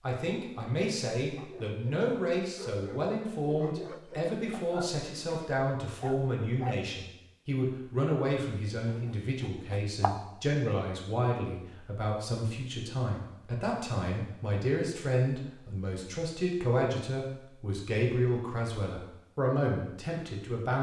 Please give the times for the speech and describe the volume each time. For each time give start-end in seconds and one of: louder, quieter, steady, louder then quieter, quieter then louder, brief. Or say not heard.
0.0-20.7 steady.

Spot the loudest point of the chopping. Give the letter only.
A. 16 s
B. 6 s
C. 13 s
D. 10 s
D.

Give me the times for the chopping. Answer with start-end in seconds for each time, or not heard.
8.8-10.2.